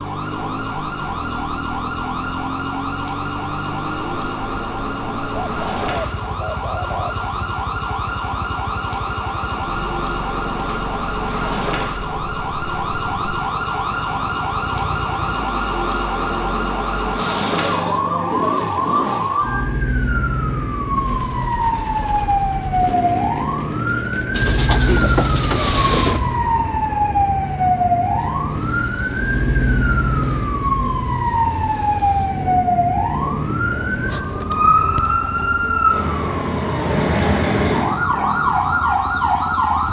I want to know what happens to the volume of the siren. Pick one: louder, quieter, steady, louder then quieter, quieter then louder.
louder.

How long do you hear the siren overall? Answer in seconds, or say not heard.
40 s.